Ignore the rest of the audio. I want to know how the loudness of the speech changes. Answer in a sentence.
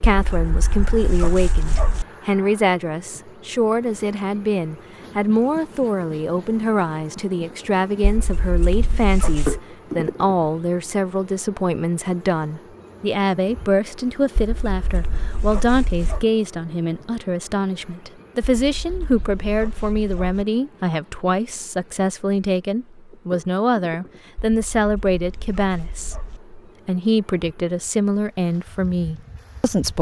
The volume of the speech stays about the same.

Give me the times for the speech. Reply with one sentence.
You can hear the speech from 0.0 to 29.9 s.